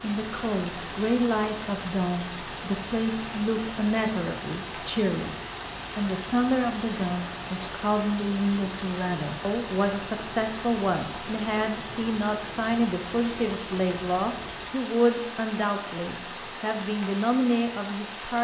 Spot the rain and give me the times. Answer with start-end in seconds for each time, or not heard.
0.0-18.3.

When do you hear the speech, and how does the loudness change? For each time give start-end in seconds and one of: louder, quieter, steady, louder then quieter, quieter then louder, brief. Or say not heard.
0.0-18.3 steady.